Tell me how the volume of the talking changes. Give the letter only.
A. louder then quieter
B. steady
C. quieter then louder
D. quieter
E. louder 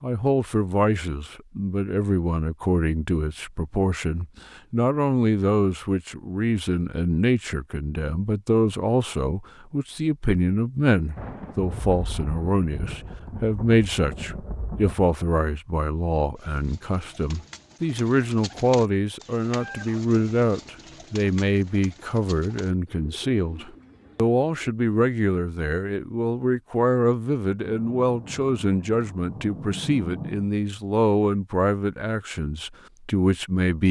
B.